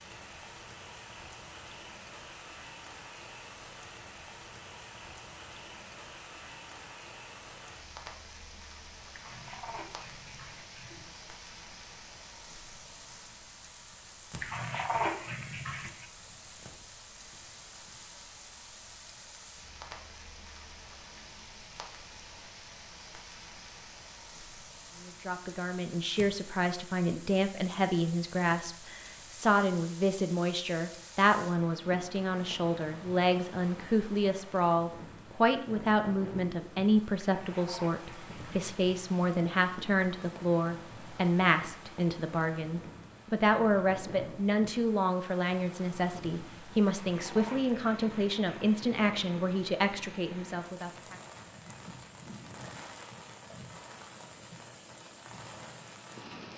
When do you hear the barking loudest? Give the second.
15 s.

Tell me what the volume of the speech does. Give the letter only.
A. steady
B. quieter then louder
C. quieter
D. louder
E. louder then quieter
A.